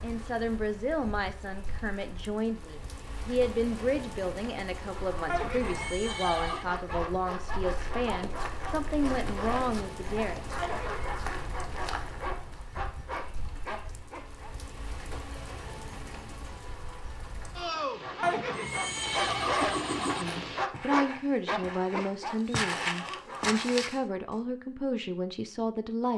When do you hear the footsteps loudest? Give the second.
23 s.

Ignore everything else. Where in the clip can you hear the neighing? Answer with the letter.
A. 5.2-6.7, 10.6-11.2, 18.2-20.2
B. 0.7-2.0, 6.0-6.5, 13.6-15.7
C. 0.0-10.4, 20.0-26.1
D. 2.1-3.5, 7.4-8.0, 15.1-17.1
A.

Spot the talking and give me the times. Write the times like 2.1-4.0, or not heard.
0.0-10.4, 20.0-26.1.